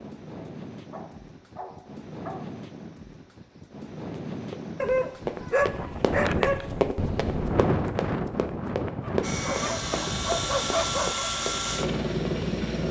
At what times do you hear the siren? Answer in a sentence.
You can't hear the siren here.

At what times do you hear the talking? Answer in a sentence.
You can't hear the talking here.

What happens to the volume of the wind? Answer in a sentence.
The loudness of the wind goes up, then down.